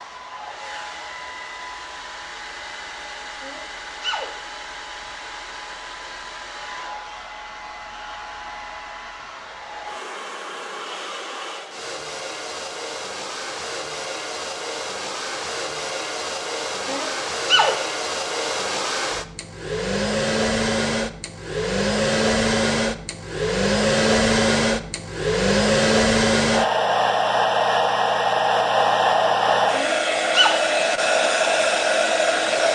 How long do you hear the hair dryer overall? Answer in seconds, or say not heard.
33 s.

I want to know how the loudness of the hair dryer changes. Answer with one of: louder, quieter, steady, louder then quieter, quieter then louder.
louder.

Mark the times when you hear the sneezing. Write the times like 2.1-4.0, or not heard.
3.4-4.3, 16.9-17.8, 29.7-30.6.